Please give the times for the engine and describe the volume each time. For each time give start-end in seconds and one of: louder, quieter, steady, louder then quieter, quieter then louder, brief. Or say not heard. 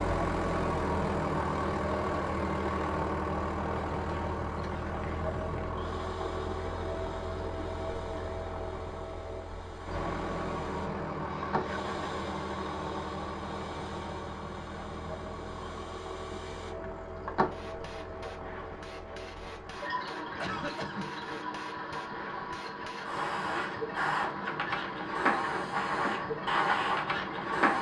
0.0-27.6 quieter.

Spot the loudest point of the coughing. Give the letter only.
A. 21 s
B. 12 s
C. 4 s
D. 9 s
A.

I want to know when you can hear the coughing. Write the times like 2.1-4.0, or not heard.
11.2-11.9, 20.4-21.1.